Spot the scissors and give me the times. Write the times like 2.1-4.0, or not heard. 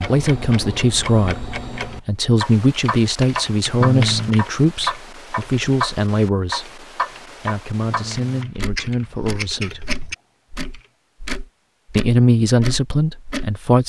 8.7-10.2.